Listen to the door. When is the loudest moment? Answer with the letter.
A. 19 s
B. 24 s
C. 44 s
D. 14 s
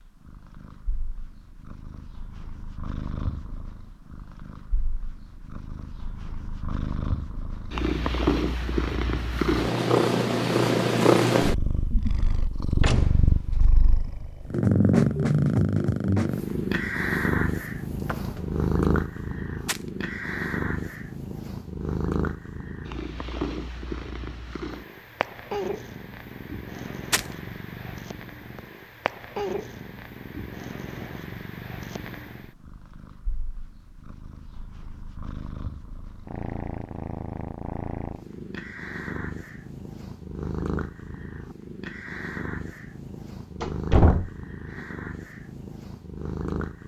C.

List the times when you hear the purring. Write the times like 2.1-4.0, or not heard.
0.0-46.8.